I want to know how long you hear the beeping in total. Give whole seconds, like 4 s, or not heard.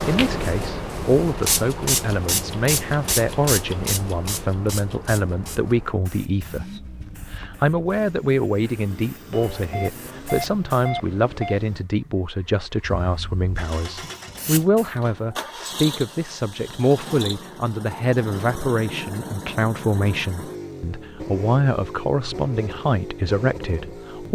2 s.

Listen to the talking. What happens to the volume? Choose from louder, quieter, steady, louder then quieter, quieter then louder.
steady.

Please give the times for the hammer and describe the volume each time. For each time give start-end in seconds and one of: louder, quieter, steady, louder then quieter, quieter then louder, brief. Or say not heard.
not heard.